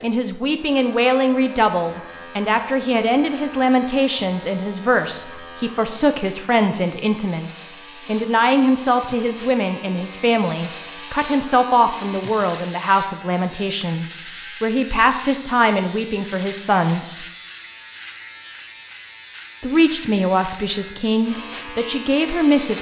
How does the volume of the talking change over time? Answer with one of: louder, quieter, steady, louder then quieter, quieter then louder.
steady.